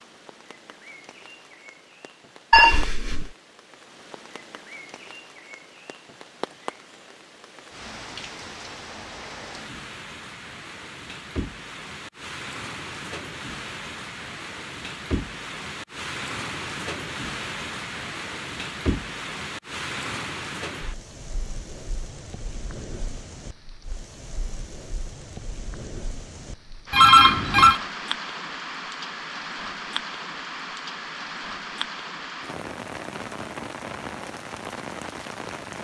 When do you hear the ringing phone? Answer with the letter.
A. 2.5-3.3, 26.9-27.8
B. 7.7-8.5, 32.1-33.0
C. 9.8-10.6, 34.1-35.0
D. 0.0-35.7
A.